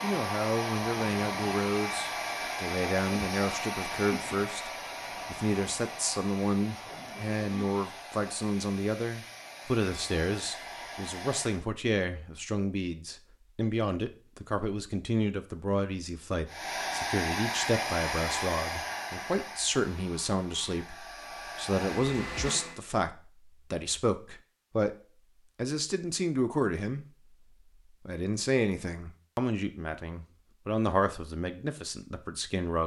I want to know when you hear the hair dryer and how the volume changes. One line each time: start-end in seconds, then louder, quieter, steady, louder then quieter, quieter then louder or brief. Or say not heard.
0.0-11.7 quieter
16.4-22.8 quieter then louder.